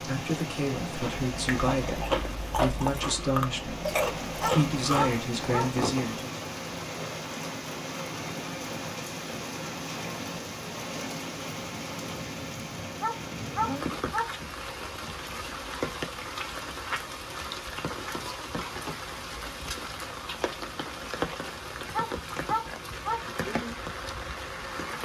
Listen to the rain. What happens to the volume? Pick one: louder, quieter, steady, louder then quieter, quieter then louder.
steady.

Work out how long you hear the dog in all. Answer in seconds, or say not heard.
4 s.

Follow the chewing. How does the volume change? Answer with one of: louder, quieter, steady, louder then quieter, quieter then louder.
steady.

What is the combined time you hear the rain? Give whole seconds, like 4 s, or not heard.
25 s.